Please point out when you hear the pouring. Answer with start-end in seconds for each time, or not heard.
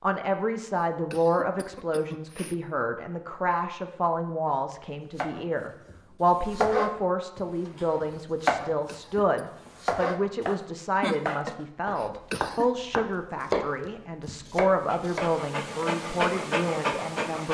not heard.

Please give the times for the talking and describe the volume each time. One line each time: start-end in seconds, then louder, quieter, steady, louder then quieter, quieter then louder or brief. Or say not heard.
0.0-17.4 steady.